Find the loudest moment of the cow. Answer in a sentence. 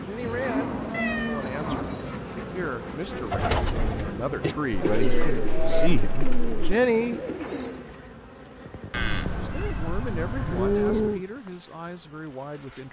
The volume of the cow peaks at 11 seconds.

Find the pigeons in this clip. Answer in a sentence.
The pigeons can be heard from 3.1 to 7.9 s.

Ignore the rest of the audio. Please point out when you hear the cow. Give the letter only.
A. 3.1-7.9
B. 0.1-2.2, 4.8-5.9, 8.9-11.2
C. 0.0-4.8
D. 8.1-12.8
B.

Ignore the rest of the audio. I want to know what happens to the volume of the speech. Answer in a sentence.
The volume of the speech goes up, then down.